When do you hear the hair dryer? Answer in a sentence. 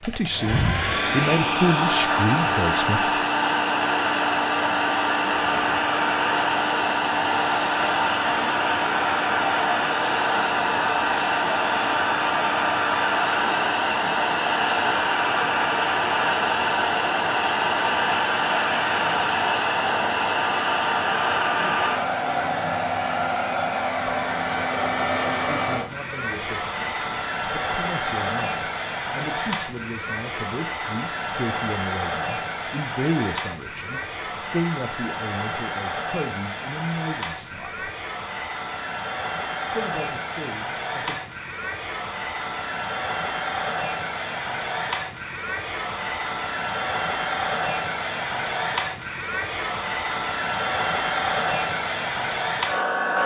You can hear the hair dryer from 0.0 to 53.2 s.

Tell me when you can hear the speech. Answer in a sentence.
The speech can be heard from 0.0 to 3.2 s, from 21.6 to 22.9 s, from 25.5 to 37.9 s and from 39.6 to 41.2 s.